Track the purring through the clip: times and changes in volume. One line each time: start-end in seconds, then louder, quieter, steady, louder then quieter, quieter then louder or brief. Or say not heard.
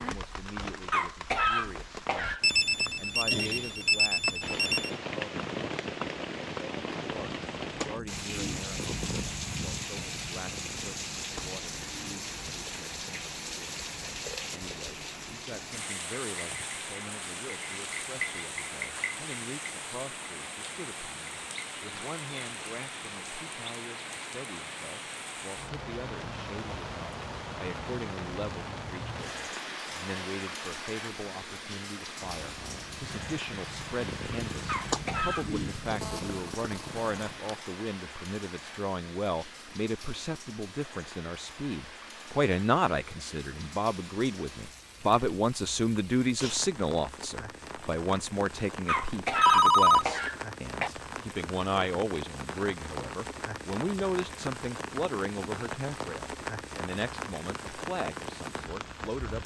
7.0-12.2 louder then quieter
32.2-37.6 louder then quieter.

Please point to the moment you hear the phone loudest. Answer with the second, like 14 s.
50 s.